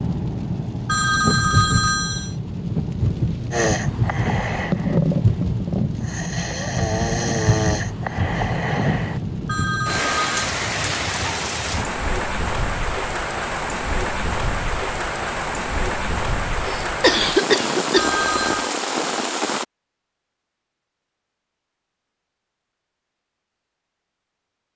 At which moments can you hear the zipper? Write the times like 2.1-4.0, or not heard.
not heard.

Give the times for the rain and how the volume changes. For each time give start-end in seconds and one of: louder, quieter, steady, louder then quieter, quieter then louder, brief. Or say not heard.
0.0-19.6 steady.